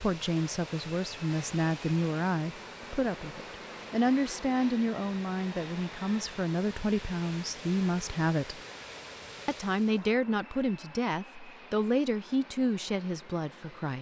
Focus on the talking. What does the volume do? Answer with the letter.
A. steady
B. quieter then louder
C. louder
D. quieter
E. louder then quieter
A.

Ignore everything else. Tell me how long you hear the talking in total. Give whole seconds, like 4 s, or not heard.
13 s.